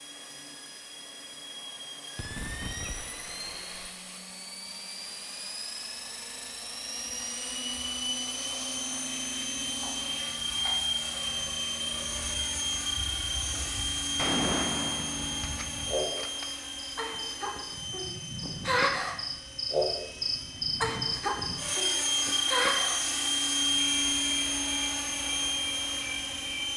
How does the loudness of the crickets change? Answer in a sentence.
The loudness of the crickets goes up, then down.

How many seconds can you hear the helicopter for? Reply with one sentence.
The helicopter can be heard for 27 seconds in total.